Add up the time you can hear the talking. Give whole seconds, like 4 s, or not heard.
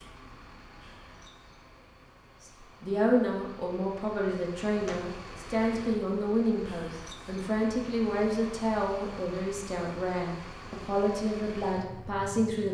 10 s.